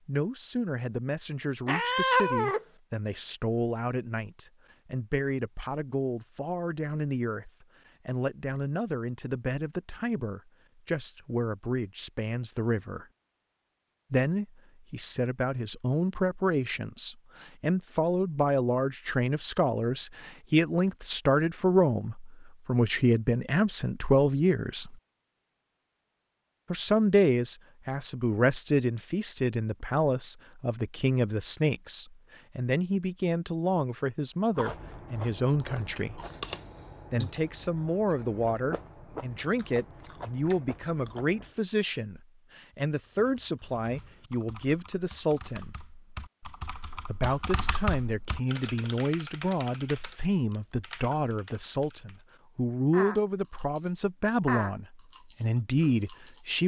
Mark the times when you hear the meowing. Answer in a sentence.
You can hear the meowing from 1.6 to 2.6 s.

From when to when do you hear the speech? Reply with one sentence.
The speech can be heard from 0.1 to 13.1 s, from 14.1 to 24.9 s, from 26.7 to 36.2 s, from 37.1 to 45.8 s and from 46.9 to 56.6 s.